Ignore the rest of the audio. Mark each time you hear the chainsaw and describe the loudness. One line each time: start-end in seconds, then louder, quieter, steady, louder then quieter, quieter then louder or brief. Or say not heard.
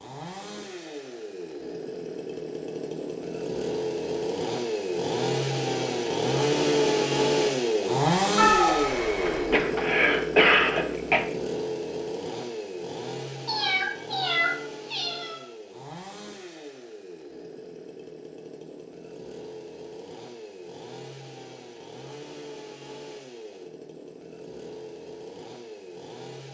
0.0-26.4 louder then quieter.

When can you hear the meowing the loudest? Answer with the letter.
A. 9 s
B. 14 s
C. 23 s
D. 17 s
A.